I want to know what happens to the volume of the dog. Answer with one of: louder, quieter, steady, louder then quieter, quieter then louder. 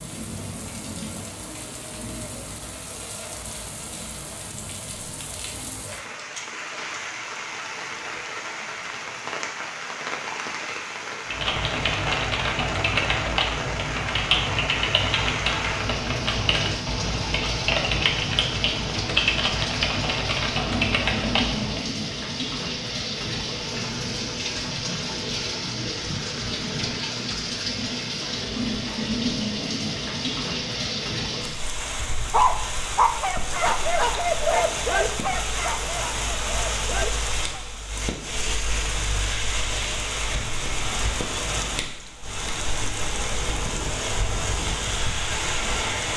quieter.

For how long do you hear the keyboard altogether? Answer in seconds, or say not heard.
11 s.